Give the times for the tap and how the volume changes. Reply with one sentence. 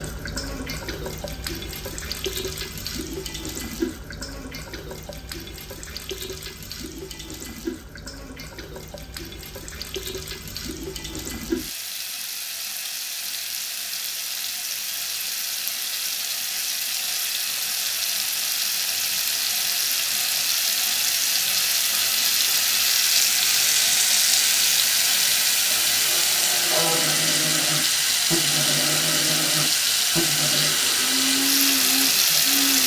You can hear the tap from 0.0 to 32.8 s, getting louder.